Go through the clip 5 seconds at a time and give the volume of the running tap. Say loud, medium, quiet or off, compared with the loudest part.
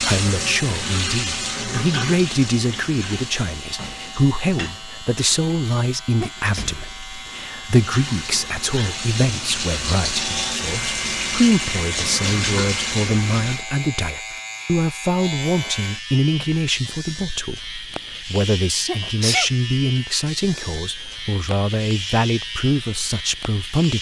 loud, medium, loud, off, off.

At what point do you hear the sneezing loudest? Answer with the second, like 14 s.
19 s.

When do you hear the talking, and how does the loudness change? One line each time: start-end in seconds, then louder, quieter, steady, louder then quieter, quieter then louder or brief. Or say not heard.
0.0-23.9 steady.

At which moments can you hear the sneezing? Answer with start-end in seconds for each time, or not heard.
6.0-6.7, 18.9-19.5.